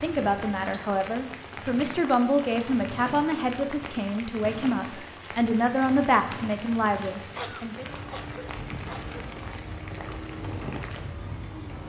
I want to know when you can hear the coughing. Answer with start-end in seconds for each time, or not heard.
7.3-9.2.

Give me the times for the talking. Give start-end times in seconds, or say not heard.
0.0-7.8.